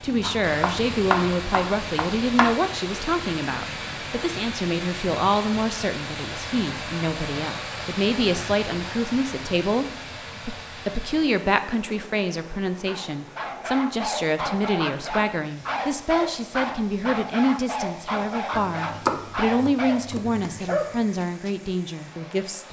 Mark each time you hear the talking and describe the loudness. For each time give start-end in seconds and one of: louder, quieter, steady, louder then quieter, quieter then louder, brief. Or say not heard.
0.0-22.6 steady.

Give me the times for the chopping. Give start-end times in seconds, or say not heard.
0.2-2.5, 18.5-20.4.